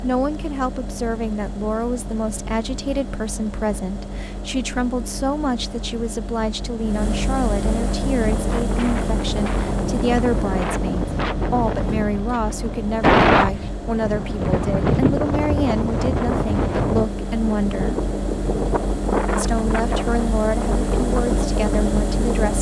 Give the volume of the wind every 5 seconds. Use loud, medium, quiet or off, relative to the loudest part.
off, medium, loud, loud, medium.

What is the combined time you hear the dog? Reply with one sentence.
The dog can't be heard in this clip.